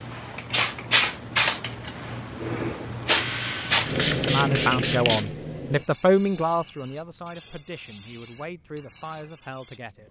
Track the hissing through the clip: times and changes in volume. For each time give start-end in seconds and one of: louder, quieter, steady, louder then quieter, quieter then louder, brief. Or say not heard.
0.0-9.8 quieter.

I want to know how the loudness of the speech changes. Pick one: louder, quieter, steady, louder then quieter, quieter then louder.
quieter.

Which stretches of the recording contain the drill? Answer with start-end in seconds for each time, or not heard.
3.0-4.4.